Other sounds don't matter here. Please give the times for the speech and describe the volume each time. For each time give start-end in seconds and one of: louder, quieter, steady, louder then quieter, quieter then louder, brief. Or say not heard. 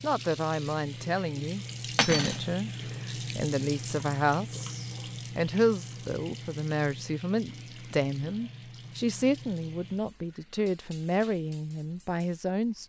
0.0-12.8 steady.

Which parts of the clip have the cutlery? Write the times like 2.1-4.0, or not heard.
1.9-2.5.